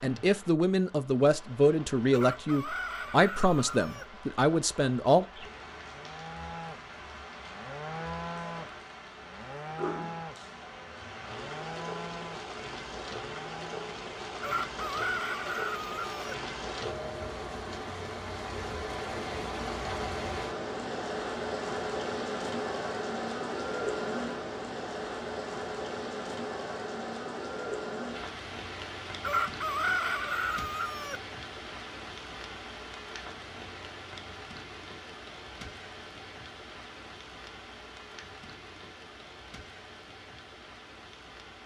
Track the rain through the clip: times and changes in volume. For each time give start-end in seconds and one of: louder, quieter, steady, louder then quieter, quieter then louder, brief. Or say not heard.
0.0-41.6 louder then quieter.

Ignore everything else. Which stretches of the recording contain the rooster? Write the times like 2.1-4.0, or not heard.
2.1-4.0, 14.4-16.4, 29.2-31.2.